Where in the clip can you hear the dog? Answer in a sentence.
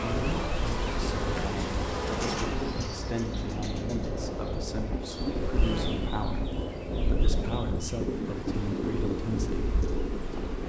The dog can't be heard in this clip.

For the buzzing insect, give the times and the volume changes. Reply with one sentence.
You can hear the buzzing insect from 0.0 to 10.6 s, getting quieter.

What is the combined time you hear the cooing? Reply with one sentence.
The cooing can be heard for 2 seconds in total.